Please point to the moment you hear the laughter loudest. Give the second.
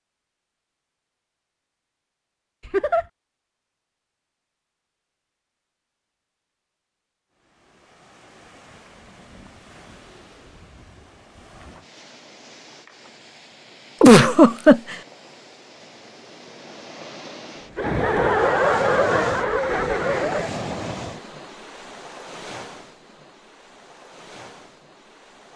14 s.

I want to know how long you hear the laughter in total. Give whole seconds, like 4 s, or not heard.
4 s.